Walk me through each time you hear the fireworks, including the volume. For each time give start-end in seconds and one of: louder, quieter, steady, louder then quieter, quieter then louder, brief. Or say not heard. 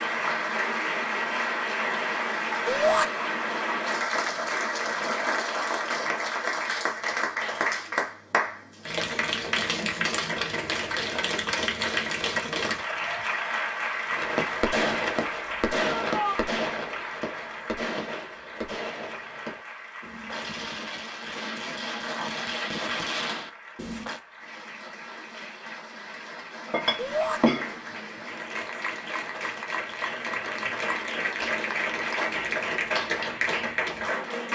14.1-24.2 quieter then louder.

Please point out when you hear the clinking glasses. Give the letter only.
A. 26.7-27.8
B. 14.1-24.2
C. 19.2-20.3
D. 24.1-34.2
A.